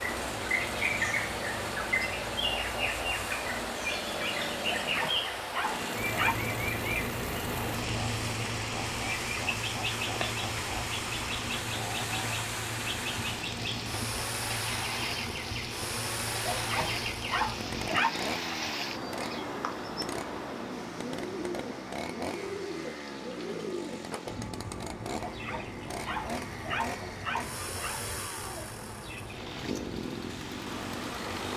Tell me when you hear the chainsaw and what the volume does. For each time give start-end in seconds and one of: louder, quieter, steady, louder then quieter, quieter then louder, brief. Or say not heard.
0.0-31.5 steady.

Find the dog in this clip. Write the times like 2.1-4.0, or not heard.
4.8-6.5, 16.4-18.3, 25.1-28.0.